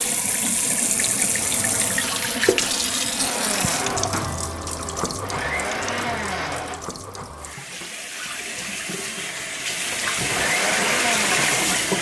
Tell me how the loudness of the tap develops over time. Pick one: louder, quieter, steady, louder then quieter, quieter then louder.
quieter then louder.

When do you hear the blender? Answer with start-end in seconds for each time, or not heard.
3.2-7.0, 10.2-11.8.